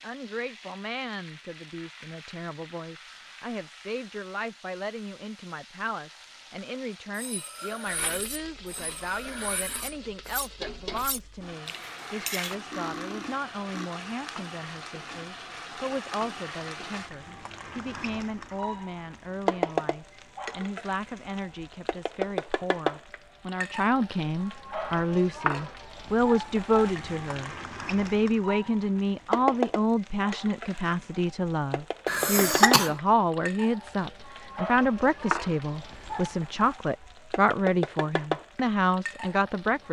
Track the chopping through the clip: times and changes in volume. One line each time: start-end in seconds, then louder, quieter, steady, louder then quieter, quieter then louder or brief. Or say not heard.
not heard.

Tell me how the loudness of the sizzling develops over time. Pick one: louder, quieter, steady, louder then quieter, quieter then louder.
louder.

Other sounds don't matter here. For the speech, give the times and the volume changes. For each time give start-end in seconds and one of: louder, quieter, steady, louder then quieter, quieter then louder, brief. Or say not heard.
0.0-39.8 louder.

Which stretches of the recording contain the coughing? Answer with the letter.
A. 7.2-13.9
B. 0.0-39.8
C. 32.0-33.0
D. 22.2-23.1
C.